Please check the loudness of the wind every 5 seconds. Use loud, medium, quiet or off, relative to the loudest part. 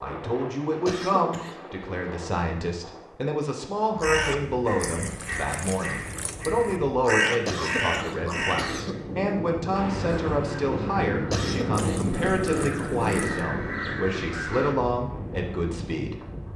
medium, medium, loud, medium.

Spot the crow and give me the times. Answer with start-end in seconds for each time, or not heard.
4.0-14.8.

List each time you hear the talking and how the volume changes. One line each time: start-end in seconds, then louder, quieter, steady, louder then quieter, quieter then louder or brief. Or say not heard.
0.0-16.1 steady.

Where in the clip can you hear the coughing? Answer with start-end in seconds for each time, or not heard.
0.8-1.6, 7.5-9.0, 11.3-12.1.